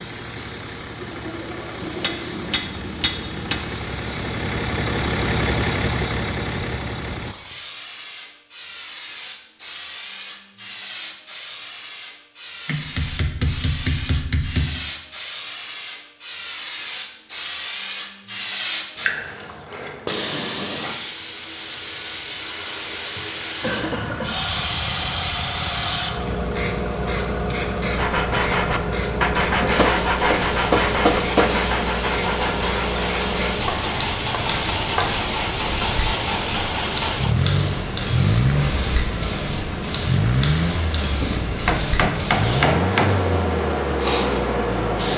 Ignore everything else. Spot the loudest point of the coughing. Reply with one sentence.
The loudest moment of the coughing is at 24 seconds.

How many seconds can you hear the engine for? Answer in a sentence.
The engine can be heard for 29 seconds in total.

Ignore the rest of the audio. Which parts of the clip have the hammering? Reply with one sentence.
The hammering can be heard from 1.8 to 3.6 s, from 12.7 to 14.7 s, from 29.6 to 31.6 s and from 41.1 to 43.1 s.